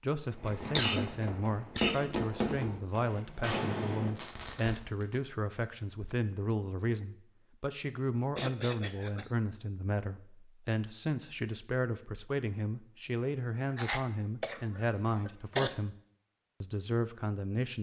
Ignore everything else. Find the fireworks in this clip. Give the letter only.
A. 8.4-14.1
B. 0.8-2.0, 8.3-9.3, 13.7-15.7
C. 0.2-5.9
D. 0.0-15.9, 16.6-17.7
C.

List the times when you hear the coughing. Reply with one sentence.
The coughing can be heard from 0.8 to 2.0 s, from 8.3 to 9.3 s and from 13.7 to 15.7 s.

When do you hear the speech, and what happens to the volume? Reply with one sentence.
The speech can be heard from 0.0 to 15.9 s, at a steady volume; and briefly from 16.6 to 17.7 s.